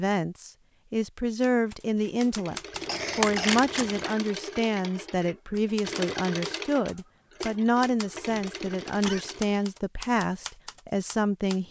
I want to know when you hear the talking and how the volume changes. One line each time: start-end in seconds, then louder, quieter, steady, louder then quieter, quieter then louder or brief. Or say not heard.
0.0-11.6 steady.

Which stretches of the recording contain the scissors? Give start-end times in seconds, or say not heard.
2.8-4.1.